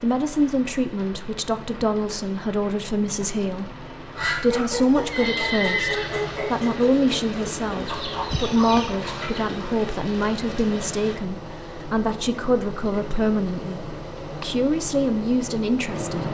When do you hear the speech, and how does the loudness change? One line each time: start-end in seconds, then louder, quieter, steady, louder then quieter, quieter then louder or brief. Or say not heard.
0.0-16.2 steady.